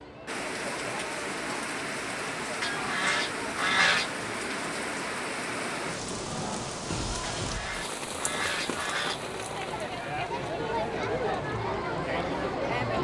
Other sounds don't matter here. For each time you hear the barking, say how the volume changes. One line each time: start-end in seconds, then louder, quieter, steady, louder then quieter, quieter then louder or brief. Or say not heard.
not heard.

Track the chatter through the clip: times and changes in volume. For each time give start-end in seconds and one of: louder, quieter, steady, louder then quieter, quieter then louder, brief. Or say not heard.
0.0-12.9 louder.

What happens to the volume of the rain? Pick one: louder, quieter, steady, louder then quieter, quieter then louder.
quieter.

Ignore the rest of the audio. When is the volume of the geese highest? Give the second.
4 s.